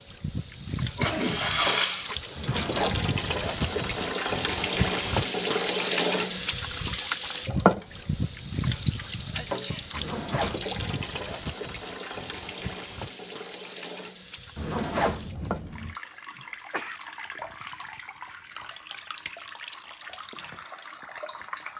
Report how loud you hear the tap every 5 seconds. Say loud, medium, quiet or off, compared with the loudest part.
loud, loud, medium, quiet, quiet.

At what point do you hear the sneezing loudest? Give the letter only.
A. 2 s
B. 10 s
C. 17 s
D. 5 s
A.